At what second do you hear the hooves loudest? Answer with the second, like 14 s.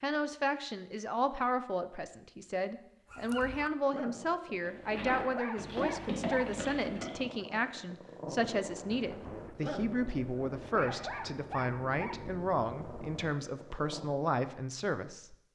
6 s.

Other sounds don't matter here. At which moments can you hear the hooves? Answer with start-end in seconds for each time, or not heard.
4.6-7.3.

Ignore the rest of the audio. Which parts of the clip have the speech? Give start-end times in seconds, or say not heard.
0.0-15.3.